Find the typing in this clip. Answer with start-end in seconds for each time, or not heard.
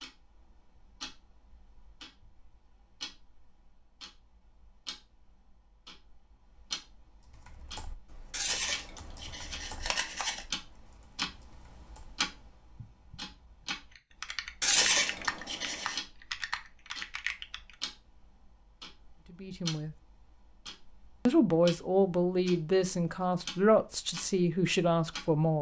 7.2-17.9.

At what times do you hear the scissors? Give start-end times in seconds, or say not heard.
8.3-10.4, 14.6-16.0.